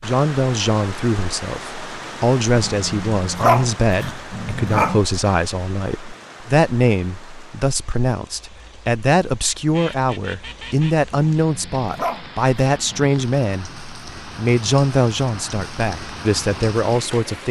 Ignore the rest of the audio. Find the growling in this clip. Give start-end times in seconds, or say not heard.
2.5-5.0, 11.1-13.1.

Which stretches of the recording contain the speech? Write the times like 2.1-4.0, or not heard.
0.0-17.4.